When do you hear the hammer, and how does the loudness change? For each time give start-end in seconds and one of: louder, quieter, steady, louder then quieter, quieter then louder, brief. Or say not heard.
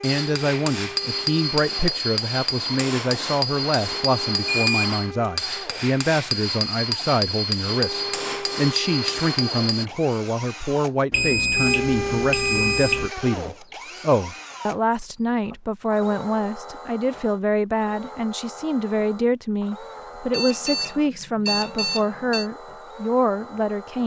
0.0-9.8 steady.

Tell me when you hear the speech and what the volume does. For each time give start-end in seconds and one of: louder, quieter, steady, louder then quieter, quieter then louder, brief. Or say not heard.
0.0-24.0 steady.